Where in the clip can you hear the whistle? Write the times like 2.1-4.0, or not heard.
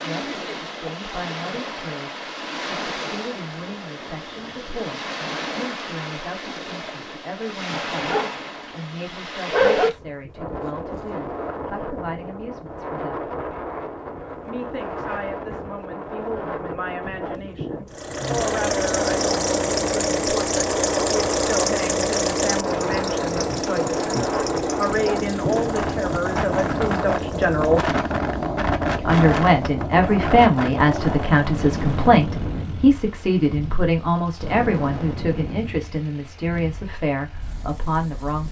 not heard.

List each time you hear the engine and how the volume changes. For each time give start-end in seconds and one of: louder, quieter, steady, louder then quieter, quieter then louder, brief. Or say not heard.
17.9-38.4 quieter.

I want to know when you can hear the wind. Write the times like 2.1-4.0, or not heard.
0.0-38.4.